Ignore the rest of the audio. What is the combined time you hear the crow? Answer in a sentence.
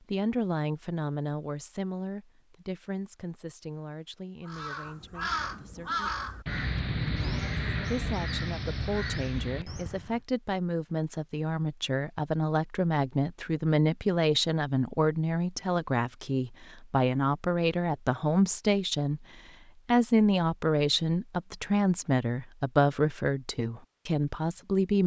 The crow can be heard for 6 seconds in total.